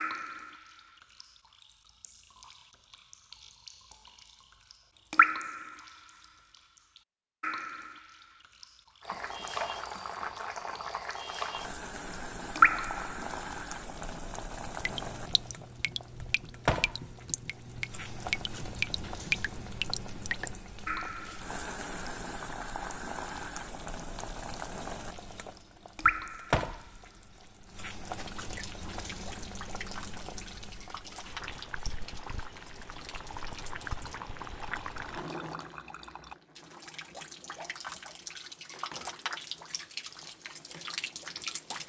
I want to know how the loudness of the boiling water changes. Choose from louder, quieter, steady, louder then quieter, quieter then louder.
quieter.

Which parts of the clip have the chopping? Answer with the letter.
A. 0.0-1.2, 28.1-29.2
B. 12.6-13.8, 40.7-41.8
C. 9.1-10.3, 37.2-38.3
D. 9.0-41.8
C.